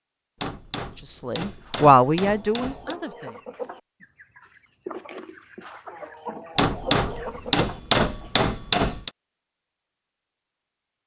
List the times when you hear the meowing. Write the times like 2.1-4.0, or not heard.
not heard.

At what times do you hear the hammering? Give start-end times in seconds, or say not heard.
0.4-3.0, 6.5-9.1.